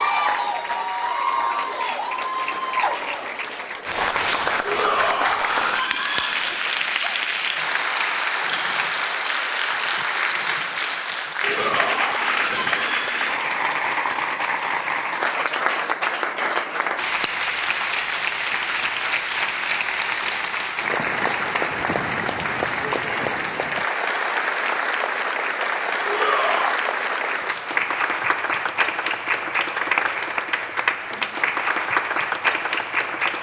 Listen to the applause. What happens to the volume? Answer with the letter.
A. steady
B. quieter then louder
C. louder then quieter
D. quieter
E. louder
A.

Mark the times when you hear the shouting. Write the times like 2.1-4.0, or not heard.
4.7-6.4, 11.4-13.2, 26.1-26.9.